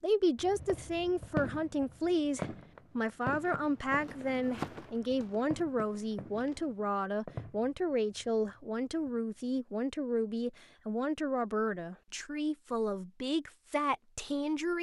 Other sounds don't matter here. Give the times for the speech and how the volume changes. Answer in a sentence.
The speech can be heard from 0.0 to 14.7 s, at a steady volume.